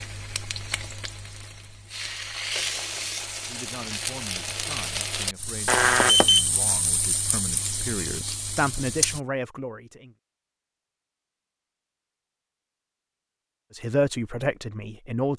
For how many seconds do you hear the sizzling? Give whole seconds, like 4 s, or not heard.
9 s.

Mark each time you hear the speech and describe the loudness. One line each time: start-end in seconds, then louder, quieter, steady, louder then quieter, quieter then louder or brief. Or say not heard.
3.5-10.2 louder
13.8-15.3 brief.